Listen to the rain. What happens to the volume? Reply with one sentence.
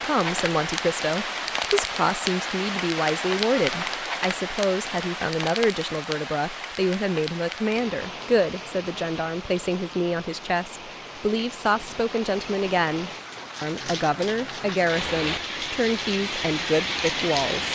The volume of the rain goes down, then up.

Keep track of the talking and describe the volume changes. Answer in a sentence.
The volume of the talking stays about the same.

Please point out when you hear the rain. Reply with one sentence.
You can hear the rain from 0.0 to 17.7 s.